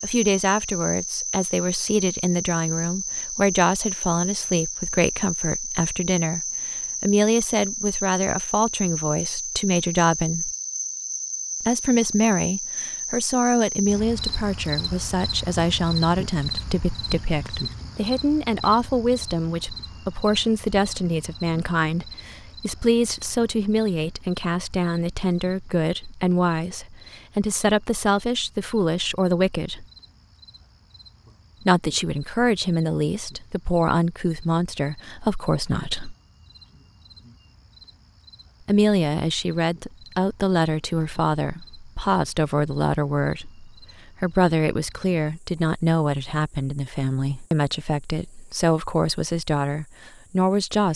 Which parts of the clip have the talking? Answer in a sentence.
The talking can be heard from 0.0 to 10.5 s, from 11.6 to 29.9 s, from 31.6 to 36.1 s and from 38.6 to 50.9 s.